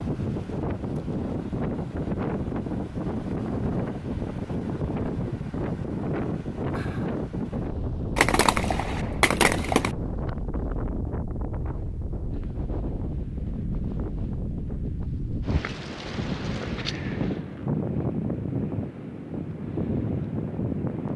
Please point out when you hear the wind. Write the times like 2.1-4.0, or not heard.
0.0-21.1.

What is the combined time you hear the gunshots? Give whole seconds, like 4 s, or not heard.
2 s.